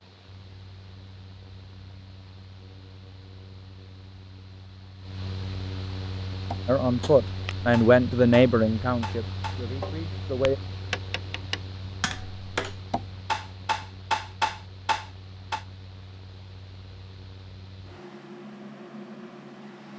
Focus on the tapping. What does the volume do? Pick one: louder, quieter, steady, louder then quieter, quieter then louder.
louder.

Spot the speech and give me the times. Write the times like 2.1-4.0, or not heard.
6.7-10.6.